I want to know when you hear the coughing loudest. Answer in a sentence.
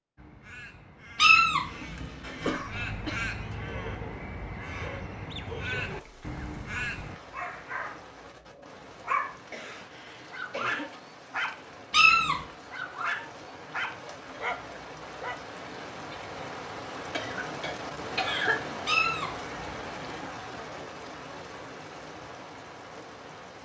The loudest moment of the coughing is at 18 seconds.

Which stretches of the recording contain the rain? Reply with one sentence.
The rain can be heard from 5.8 to 23.5 s.